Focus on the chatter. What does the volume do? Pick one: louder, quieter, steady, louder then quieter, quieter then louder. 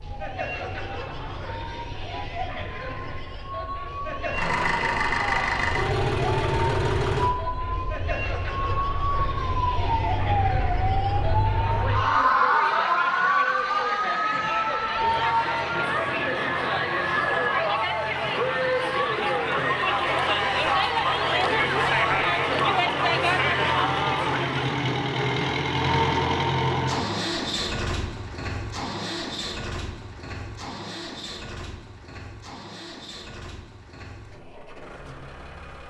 louder.